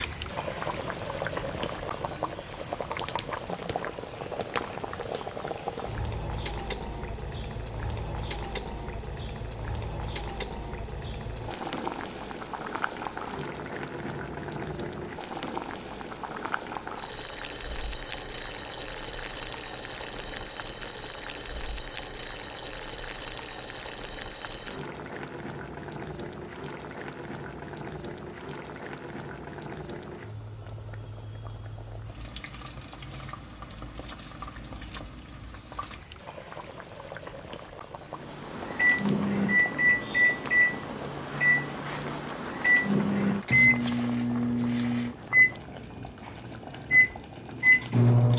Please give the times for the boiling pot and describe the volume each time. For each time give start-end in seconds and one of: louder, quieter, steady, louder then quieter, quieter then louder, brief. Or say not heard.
0.0-48.3 quieter.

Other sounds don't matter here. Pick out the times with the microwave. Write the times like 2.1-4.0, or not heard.
38.1-48.3.